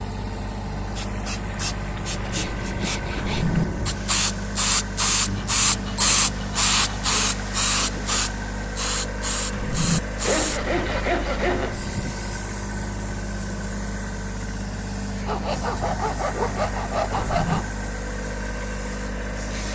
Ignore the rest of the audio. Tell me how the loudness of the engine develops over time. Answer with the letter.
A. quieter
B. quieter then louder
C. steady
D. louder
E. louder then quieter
C.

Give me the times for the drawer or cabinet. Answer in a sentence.
You can hear the drawer or cabinet from 3.1 to 3.6 s, from 9.5 to 10.0 s and from 17.1 to 17.6 s.